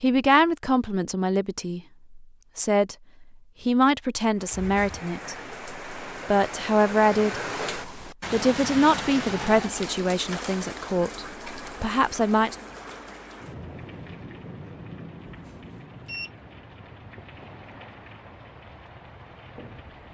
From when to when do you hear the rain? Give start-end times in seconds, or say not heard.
4.3-20.1.